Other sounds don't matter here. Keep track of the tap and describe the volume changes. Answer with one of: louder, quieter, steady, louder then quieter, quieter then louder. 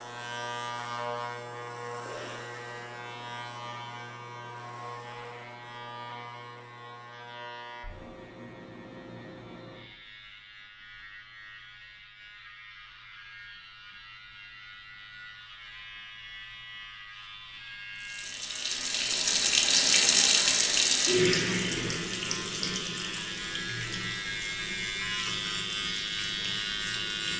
quieter.